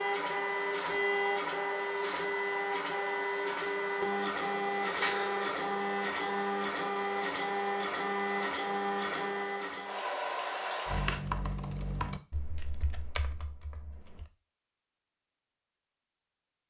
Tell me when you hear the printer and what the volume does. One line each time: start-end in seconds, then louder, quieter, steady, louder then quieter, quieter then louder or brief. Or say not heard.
0.0-11.2 steady.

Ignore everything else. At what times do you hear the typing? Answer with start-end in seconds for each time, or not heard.
10.8-14.2.